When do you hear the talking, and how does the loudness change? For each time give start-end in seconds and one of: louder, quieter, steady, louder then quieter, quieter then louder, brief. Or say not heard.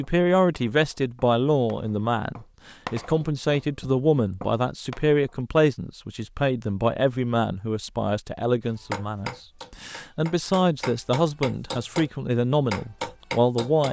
0.0-13.8 steady.